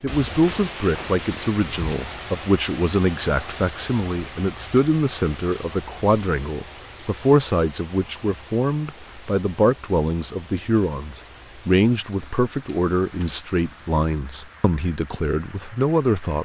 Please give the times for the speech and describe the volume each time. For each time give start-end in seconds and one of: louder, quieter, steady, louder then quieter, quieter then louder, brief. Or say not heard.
0.0-16.4 steady.